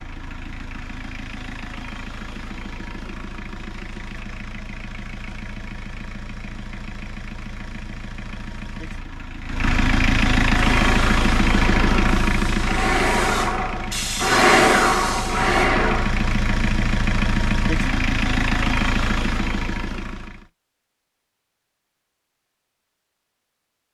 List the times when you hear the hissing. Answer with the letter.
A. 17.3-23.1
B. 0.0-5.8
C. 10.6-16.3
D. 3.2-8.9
C.